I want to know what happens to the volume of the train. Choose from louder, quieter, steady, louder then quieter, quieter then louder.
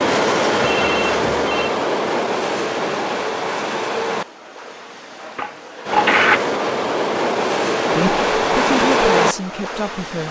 quieter then louder.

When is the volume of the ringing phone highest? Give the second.
6 s.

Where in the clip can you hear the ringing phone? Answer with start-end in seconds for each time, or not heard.
0.6-1.7, 5.3-6.5.